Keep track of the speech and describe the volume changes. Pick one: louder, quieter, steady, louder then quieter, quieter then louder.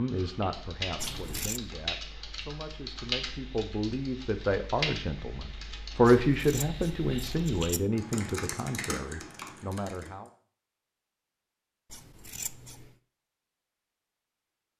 louder then quieter.